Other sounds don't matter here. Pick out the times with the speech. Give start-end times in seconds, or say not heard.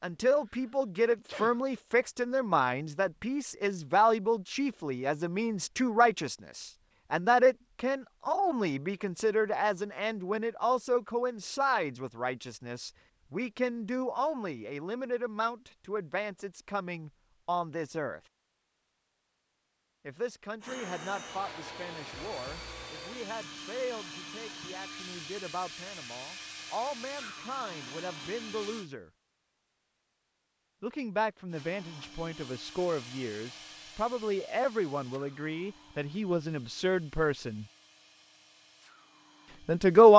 0.0-18.2, 20.1-29.1, 30.8-37.6, 39.6-40.1.